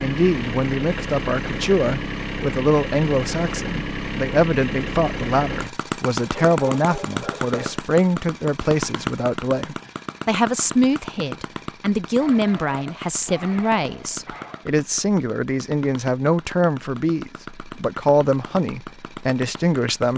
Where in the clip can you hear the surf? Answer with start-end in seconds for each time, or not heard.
not heard.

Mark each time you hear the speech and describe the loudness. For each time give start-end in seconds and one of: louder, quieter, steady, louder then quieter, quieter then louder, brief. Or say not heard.
0.0-20.1 steady.